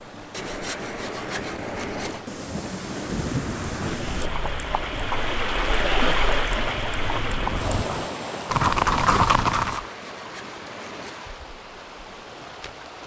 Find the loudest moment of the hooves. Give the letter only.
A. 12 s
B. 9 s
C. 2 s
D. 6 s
B.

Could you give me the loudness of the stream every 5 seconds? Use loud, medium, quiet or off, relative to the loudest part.
medium, loud, quiet.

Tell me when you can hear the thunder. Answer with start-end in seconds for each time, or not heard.
2.2-4.3.